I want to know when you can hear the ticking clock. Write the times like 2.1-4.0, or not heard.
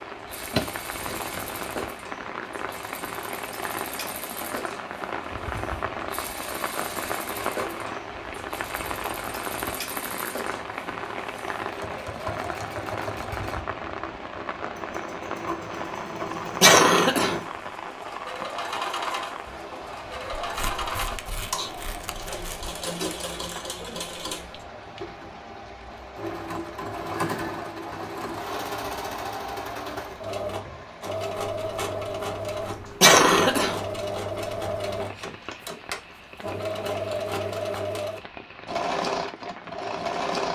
not heard.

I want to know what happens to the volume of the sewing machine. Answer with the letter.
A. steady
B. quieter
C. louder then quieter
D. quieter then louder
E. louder
E.